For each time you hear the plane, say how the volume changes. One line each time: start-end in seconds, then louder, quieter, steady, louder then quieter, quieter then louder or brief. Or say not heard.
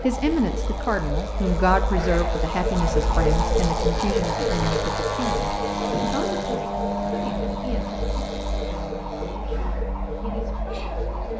0.0-11.3 louder then quieter.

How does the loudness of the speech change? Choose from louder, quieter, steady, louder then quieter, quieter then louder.
quieter.